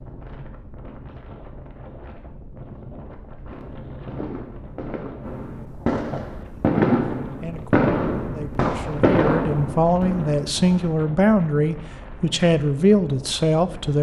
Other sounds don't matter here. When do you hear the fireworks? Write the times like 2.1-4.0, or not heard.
3.5-10.6.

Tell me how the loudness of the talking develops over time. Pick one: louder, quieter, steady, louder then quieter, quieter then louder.
louder.